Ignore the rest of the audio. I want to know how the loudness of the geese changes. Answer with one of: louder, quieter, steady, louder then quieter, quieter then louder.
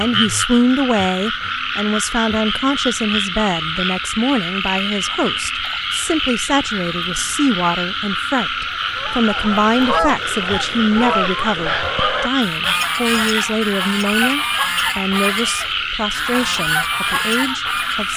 steady.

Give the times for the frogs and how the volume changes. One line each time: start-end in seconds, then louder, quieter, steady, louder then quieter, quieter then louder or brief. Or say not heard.
0.0-18.1 steady.